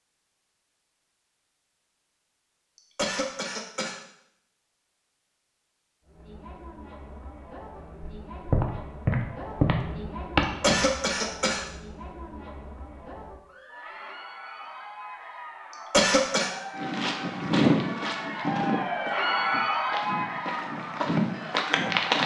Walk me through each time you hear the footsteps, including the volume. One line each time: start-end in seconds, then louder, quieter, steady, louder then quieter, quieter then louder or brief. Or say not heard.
8.0-10.8 brief
16.8-22.2 quieter then louder.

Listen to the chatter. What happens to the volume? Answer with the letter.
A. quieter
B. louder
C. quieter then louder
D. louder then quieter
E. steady
B.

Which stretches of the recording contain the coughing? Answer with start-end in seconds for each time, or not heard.
3.0-4.0, 10.6-11.7, 15.9-16.5.